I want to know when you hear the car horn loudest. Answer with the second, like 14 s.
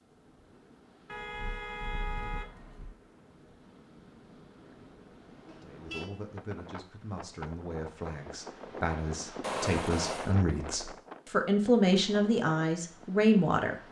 10 s.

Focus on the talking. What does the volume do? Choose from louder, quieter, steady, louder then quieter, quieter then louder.
louder.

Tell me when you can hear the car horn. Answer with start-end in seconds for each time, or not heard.
1.1-3.0, 5.5-6.1, 9.4-10.3.